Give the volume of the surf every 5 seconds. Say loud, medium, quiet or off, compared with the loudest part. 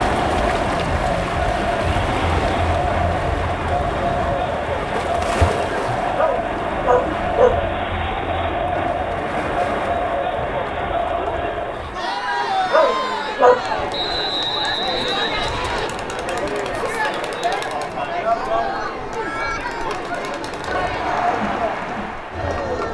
loud, loud, medium, medium, medium.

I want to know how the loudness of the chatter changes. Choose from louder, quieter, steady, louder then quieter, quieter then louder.
steady.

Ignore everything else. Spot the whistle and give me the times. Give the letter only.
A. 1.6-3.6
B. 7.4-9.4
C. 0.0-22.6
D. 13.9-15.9
D.